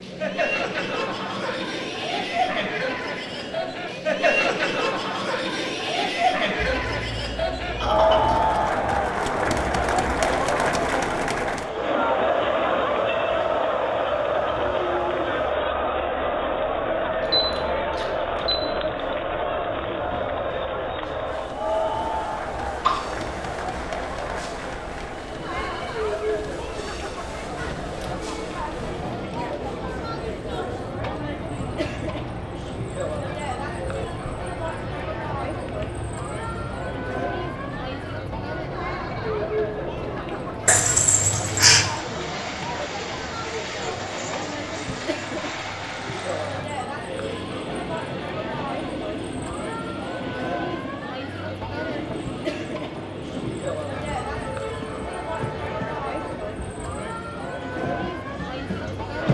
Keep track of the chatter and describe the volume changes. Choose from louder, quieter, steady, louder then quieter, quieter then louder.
quieter.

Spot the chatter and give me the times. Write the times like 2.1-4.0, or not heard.
0.0-59.2.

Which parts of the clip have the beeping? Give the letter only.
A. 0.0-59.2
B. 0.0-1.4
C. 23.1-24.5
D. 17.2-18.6
D.